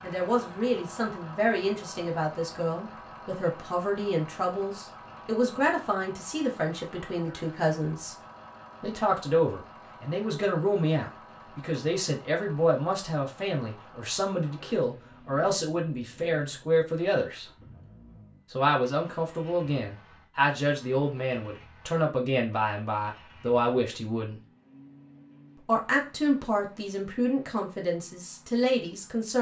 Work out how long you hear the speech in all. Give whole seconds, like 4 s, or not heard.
26 s.